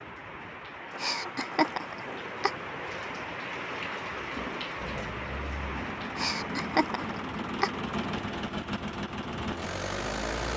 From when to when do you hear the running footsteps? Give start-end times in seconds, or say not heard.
not heard.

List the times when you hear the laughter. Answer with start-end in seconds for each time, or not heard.
0.9-2.5, 6.2-7.7.